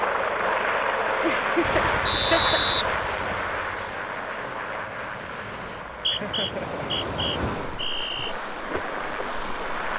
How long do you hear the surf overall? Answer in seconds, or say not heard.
8 s.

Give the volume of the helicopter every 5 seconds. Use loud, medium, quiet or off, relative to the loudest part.
loud, medium.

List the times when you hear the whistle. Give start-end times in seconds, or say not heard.
2.0-3.4, 5.8-8.3.